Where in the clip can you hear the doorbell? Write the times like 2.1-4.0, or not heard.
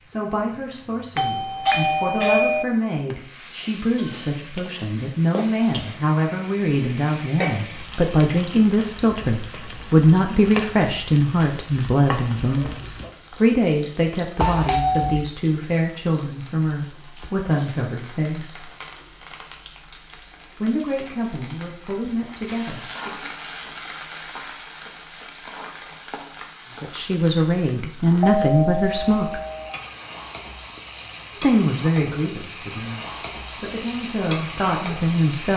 1.1-2.6, 14.4-15.2, 28.2-29.7.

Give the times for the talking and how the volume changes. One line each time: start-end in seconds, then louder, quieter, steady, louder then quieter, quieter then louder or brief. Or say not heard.
0.1-18.7 louder then quieter
20.6-23.3 brief
26.8-29.4 brief
31.4-35.5 quieter then louder.